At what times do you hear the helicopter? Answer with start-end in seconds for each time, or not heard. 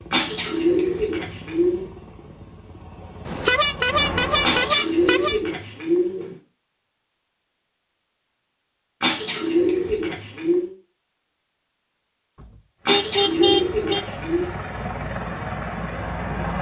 0.0-4.8, 12.8-16.5.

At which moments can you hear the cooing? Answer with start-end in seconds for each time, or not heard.
0.1-1.9, 4.4-6.3, 9.0-10.7, 12.8-14.5.